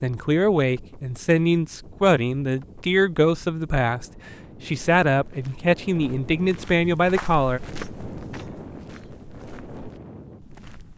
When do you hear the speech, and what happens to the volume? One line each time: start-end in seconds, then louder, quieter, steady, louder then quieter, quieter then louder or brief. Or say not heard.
0.0-7.6 steady.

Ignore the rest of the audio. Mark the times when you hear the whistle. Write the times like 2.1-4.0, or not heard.
not heard.